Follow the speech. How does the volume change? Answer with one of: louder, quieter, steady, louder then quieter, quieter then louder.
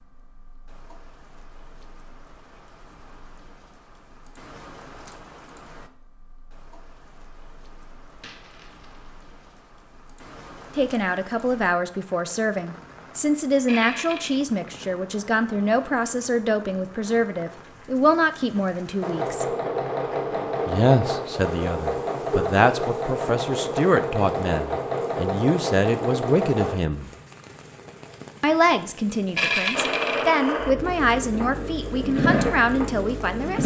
steady.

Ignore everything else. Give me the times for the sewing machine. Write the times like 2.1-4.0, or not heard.
19.0-26.8, 29.7-33.6.